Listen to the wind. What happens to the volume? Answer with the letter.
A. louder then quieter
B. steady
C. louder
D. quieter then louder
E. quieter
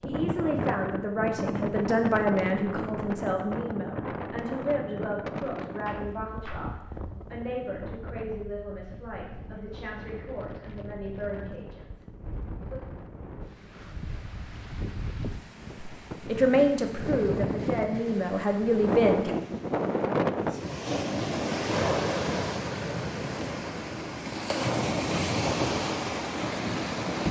D.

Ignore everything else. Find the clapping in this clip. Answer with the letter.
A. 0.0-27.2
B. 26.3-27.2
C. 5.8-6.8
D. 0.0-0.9
C.